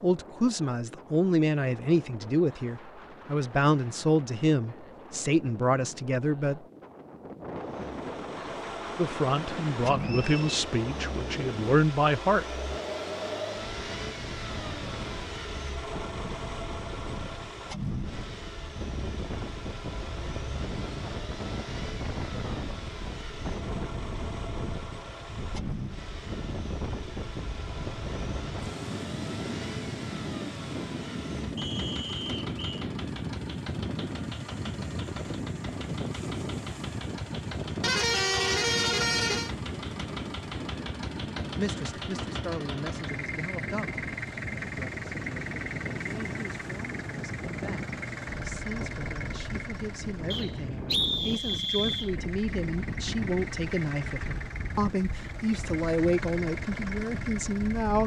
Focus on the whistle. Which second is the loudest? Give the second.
51 s.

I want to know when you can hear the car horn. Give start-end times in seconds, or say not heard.
37.8-39.5.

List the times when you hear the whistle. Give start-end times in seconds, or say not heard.
10.0-10.6, 31.6-32.9, 50.3-52.1.